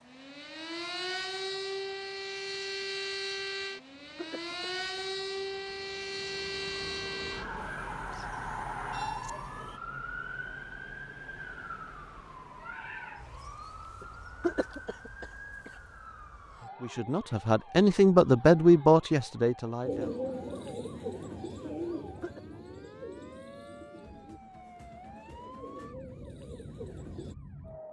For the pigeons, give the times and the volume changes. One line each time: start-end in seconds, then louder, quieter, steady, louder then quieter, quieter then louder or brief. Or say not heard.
19.8-27.4 quieter then louder.